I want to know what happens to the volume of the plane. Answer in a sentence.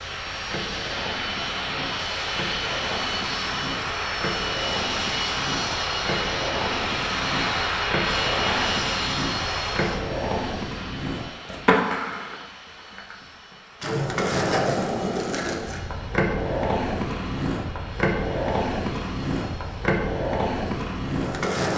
The volume of the plane goes down.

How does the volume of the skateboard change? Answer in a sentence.
The loudness of the skateboard goes up.